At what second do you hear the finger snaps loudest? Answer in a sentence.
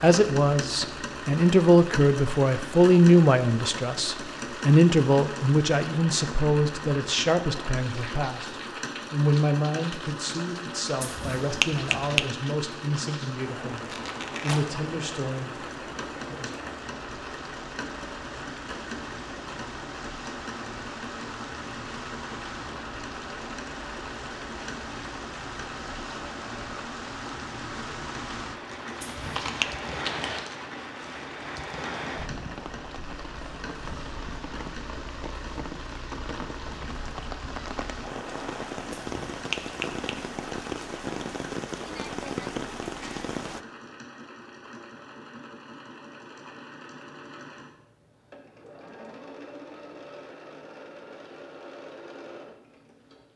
The volume of the finger snaps peaks at 12 seconds.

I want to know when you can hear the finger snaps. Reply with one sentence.
The finger snaps can be heard from 11.0 to 12.2 s, from 29.0 to 29.8 s and from 39.0 to 40.1 s.